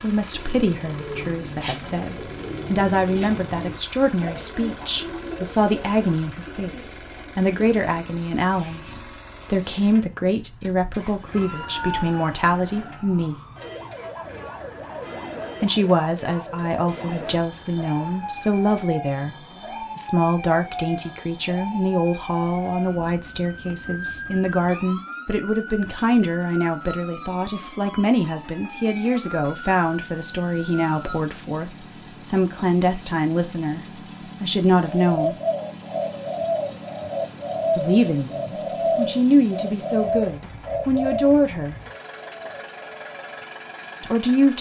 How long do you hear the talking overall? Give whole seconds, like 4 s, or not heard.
37 s.